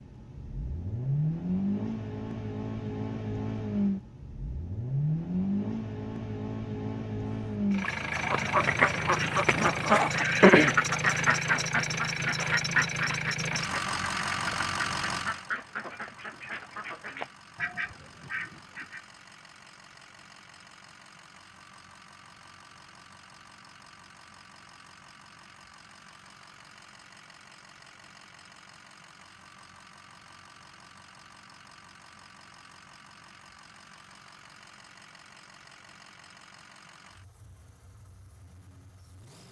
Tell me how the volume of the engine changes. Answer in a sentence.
The loudness of the engine goes down.